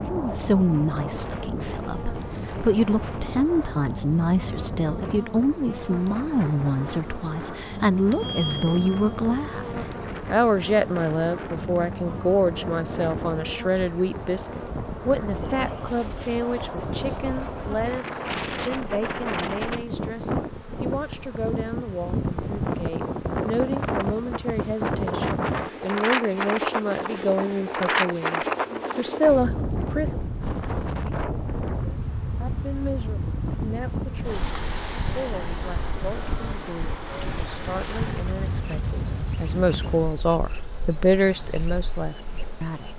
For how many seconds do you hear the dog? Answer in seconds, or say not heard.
not heard.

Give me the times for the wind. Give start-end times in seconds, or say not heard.
0.0-42.7.